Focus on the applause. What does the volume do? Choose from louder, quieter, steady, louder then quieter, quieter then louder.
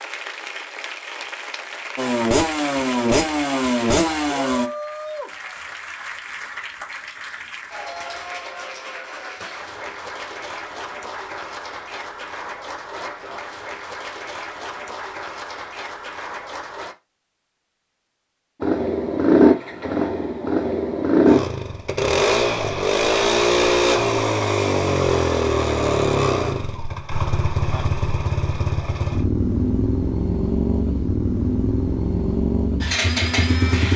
steady.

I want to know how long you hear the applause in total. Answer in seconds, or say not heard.
17 s.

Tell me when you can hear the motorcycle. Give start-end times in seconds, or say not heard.
1.9-4.7, 18.6-33.9.